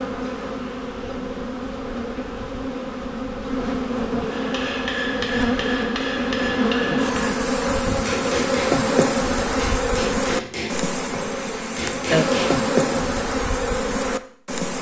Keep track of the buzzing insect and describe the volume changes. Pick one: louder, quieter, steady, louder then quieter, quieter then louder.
louder.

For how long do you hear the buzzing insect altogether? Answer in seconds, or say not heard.
15 s.